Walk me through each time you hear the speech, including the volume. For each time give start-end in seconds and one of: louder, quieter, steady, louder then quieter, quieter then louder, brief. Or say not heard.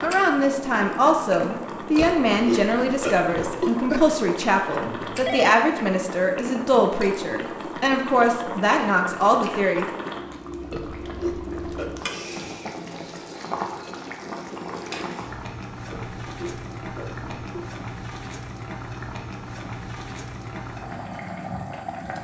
0.0-10.1 steady.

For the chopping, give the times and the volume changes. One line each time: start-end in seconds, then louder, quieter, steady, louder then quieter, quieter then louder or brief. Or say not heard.
not heard.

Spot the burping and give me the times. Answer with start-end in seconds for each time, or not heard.
1.9-4.0, 10.7-11.9, 15.9-17.6.